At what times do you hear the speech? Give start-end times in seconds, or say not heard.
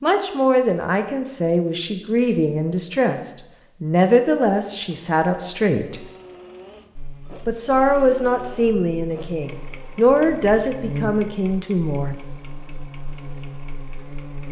0.0-6.0, 7.5-12.2.